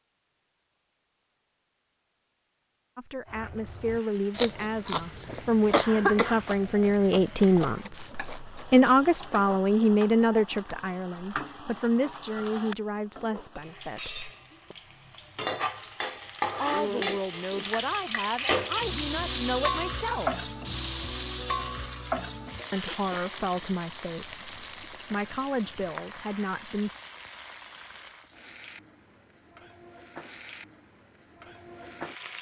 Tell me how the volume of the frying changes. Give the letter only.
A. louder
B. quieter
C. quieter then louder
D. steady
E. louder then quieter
E.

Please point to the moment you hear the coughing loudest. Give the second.
6 s.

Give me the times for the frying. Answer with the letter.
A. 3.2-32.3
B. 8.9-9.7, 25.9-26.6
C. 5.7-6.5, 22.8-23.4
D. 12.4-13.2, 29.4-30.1
A.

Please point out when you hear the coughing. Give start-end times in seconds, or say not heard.
5.7-6.5, 22.8-23.4.